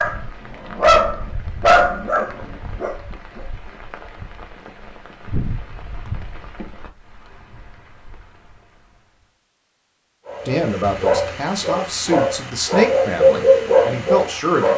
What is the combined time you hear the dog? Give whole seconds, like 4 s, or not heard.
8 s.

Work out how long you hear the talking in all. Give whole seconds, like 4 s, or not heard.
4 s.